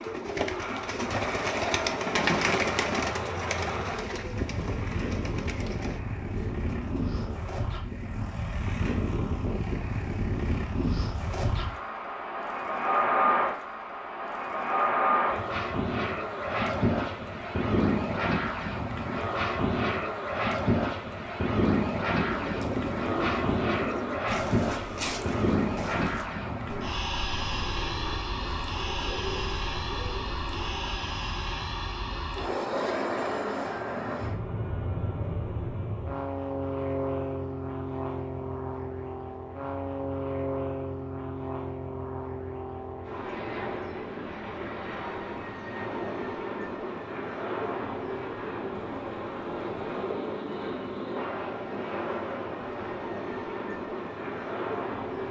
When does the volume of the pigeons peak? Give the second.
2 s.